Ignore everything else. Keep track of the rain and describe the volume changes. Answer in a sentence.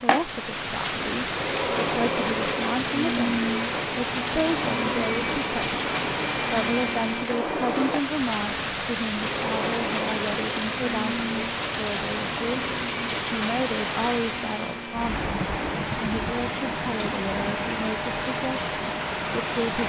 The volume of the rain stays about the same.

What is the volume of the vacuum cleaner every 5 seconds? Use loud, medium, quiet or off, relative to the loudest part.
loud, loud, medium, medium.